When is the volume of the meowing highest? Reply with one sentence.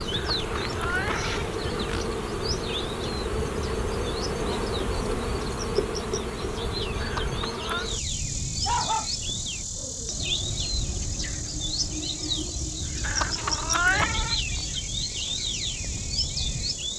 The volume of the meowing peaks at 14 seconds.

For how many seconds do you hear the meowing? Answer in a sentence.
You can hear the meowing for 4 seconds altogether.